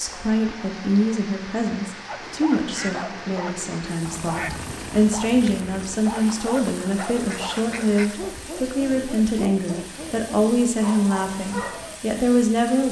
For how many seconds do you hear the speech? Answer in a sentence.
You can hear the speech for 13 seconds altogether.